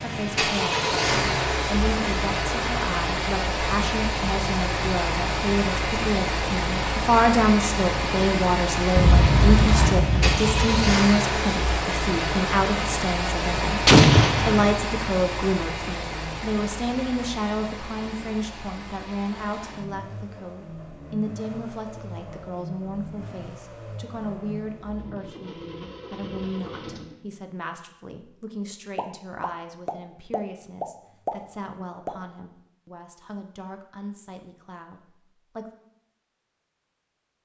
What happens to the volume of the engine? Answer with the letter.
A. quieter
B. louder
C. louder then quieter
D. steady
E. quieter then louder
A.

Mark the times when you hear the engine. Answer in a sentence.
You can hear the engine from 0.0 to 27.2 s.